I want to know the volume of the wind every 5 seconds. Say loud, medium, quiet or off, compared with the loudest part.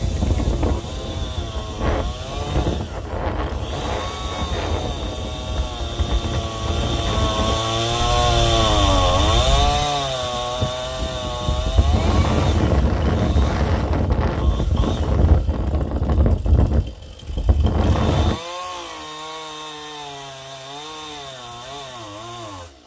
loud, medium, loud, loud, off.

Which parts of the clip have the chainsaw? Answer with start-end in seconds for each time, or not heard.
0.0-22.8.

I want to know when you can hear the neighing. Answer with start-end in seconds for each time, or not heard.
not heard.